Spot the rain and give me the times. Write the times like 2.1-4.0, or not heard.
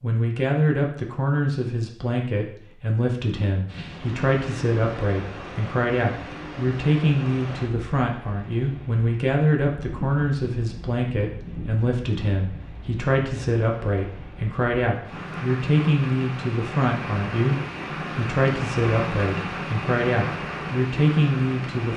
3.6-21.9.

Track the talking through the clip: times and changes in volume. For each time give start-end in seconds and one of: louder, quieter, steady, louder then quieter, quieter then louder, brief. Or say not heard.
0.0-21.9 steady.